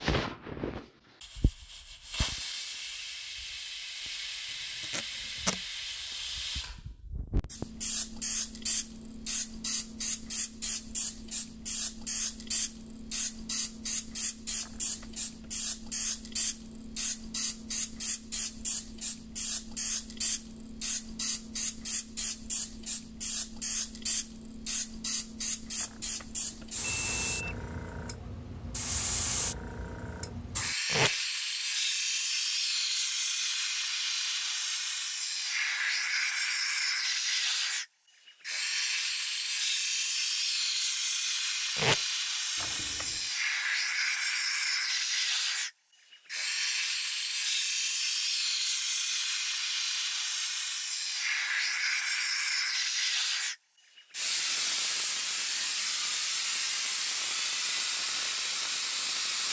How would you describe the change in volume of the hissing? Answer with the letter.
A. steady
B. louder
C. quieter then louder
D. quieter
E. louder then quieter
B.